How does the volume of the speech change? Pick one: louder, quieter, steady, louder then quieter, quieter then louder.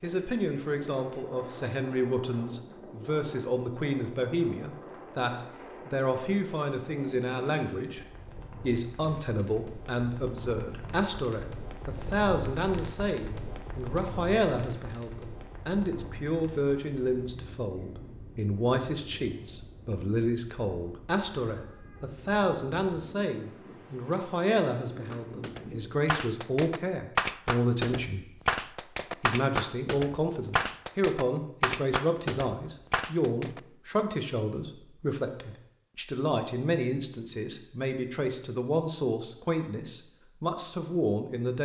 steady.